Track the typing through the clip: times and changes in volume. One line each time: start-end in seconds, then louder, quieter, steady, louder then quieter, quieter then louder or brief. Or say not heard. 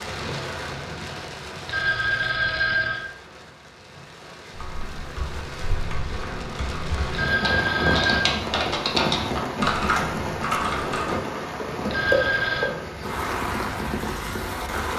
4.5-11.2 louder.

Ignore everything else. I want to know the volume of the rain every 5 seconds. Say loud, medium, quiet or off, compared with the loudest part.
medium, loud, loud.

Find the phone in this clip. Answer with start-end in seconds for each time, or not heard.
1.6-3.1, 7.1-8.3, 11.9-12.8.